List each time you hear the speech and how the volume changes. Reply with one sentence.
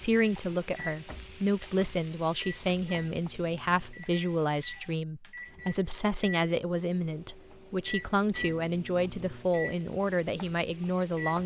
You can hear the speech from 0.0 to 11.4 s, at a steady volume.